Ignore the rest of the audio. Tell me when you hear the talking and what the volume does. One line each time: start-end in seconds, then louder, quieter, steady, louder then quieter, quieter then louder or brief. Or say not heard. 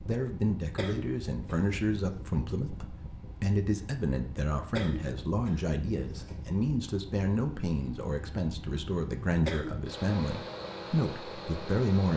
0.0-12.1 steady.